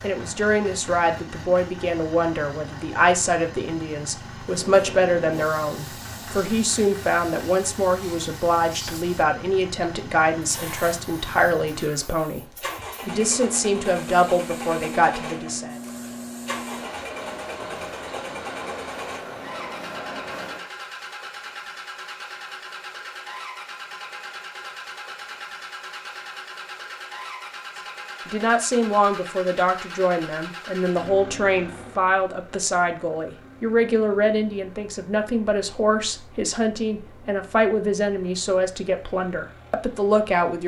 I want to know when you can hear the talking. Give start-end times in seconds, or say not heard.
0.0-15.8, 28.2-40.6.